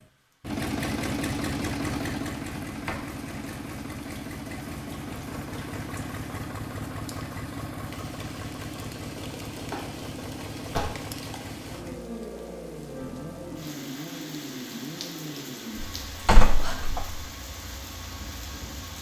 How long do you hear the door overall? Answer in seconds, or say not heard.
3 s.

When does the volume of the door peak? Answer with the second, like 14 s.
16 s.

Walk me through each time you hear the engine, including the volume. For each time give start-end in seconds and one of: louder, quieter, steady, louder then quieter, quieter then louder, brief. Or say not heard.
0.0-18.9 quieter.